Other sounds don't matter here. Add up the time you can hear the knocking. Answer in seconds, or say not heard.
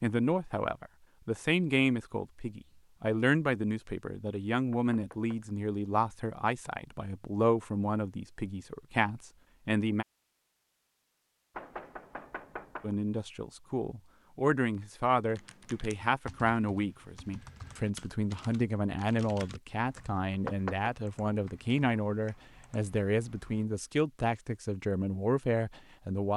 3 s.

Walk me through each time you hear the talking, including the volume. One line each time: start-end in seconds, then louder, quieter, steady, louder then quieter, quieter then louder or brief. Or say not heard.
0.0-10.1 steady
12.8-26.3 steady.